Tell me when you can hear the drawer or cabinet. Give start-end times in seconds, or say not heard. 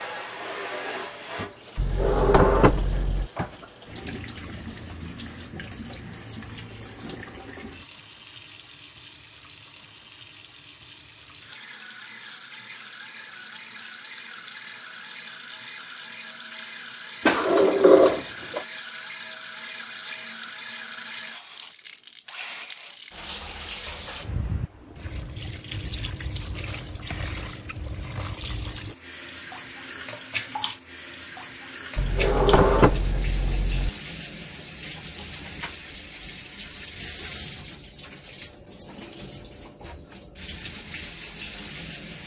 1.8-3.3, 17.2-18.6, 31.9-33.9.